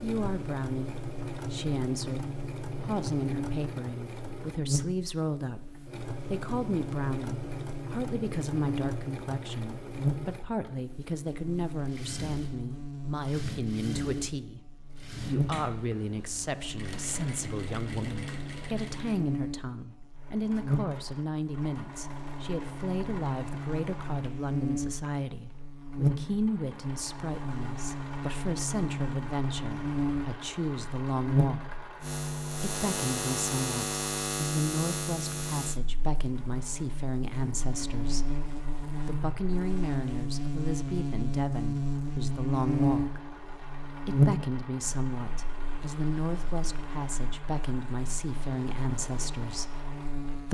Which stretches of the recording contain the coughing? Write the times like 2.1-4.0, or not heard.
not heard.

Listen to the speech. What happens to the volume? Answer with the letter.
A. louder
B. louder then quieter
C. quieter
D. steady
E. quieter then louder
D.